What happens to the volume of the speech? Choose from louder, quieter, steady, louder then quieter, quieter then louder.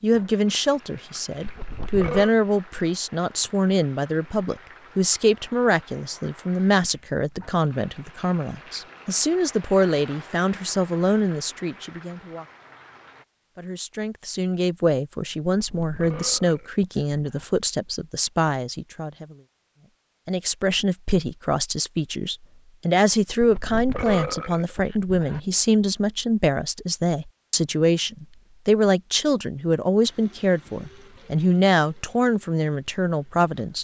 steady.